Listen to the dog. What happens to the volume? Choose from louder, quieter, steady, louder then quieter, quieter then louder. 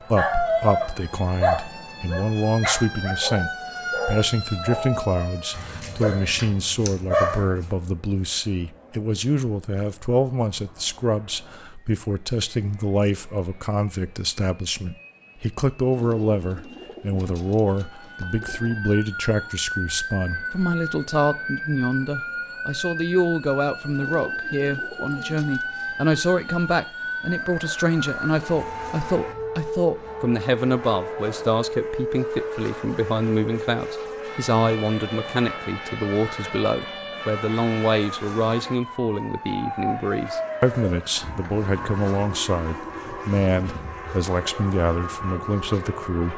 quieter then louder.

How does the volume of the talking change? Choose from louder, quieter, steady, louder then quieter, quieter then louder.
steady.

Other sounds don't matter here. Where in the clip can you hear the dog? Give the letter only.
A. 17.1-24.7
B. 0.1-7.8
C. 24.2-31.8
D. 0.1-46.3
B.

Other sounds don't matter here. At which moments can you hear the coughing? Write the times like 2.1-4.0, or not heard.
not heard.